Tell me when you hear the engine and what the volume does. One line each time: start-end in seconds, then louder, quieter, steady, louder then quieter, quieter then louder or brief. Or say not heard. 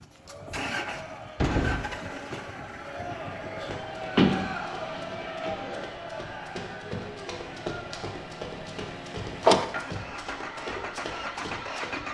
0.0-12.0 quieter then louder.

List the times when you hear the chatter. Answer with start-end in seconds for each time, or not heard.
0.0-8.1.